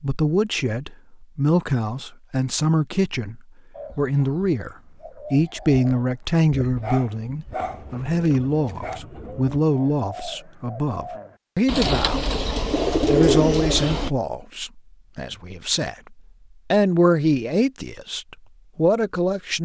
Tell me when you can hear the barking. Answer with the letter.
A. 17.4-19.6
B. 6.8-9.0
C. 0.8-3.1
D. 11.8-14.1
B.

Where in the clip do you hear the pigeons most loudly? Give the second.
13 s.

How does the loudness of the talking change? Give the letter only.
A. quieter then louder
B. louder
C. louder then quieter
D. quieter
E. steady
E.